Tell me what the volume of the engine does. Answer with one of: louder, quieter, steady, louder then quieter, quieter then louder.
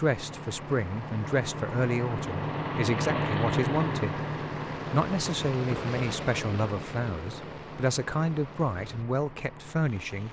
louder then quieter.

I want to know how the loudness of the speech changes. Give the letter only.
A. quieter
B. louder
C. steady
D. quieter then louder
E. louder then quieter
C.